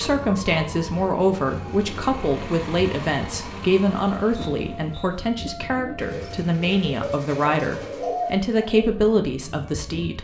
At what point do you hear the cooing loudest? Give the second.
8 s.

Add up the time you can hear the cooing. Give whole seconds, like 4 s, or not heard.
3 s.